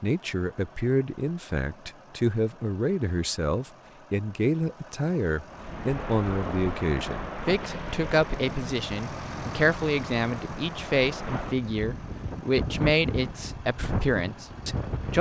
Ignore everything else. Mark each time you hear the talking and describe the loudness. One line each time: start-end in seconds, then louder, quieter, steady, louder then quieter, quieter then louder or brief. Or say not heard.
0.0-15.1 steady.